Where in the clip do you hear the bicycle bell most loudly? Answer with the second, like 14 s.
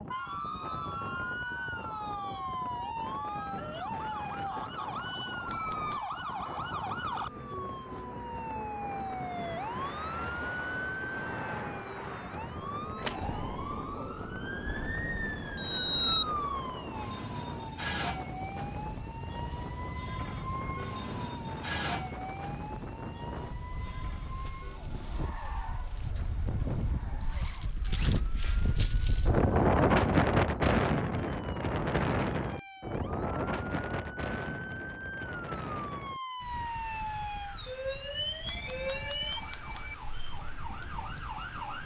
16 s.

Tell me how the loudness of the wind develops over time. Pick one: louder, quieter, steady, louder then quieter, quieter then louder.
louder then quieter.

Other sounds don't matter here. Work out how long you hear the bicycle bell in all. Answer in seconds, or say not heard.
4 s.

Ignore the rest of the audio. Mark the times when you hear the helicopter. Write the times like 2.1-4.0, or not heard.
not heard.